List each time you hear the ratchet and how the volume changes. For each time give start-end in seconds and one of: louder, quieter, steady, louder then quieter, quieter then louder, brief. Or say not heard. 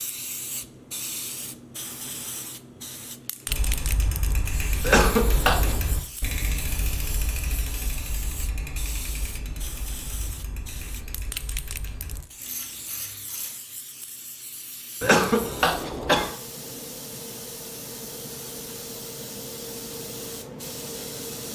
3.5-13.6 quieter.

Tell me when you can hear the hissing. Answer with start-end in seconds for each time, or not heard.
0.0-21.5.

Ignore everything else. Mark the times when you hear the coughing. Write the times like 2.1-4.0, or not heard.
4.8-5.8, 15.0-16.3.